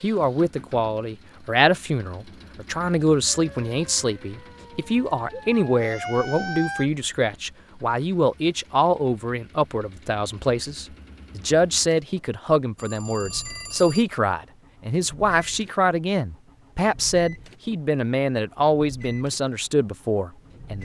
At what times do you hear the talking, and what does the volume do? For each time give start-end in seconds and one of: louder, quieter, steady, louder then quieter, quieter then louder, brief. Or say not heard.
0.0-20.8 steady.